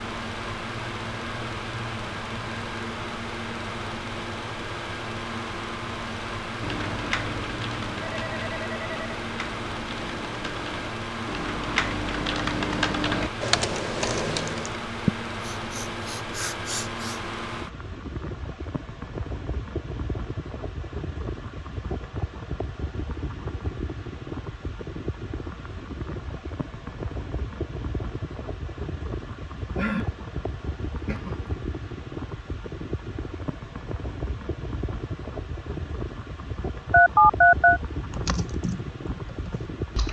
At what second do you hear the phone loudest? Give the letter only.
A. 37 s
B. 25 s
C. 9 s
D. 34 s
A.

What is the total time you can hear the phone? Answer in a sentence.
The phone can be heard for 2 seconds in total.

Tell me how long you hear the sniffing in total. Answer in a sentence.
The sniffing can be heard for 4 seconds in total.